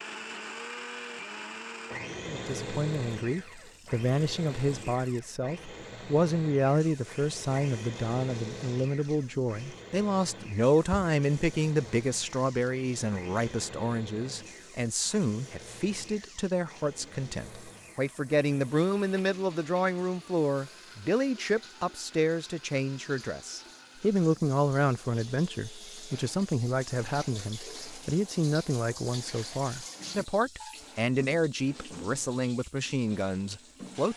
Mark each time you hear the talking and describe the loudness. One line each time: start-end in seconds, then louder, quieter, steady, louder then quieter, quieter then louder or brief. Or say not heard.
2.2-34.1 steady.